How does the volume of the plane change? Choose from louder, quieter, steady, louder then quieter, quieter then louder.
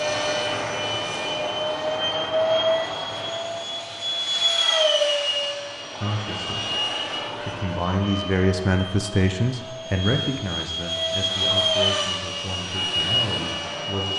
quieter then louder.